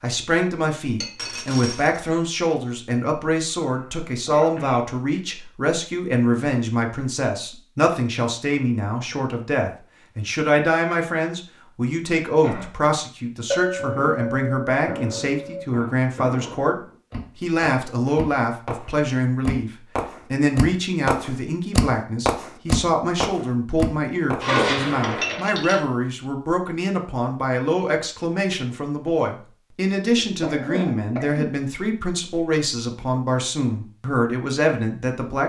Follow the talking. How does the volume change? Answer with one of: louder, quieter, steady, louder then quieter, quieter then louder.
steady.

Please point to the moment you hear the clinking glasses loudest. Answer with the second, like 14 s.
25 s.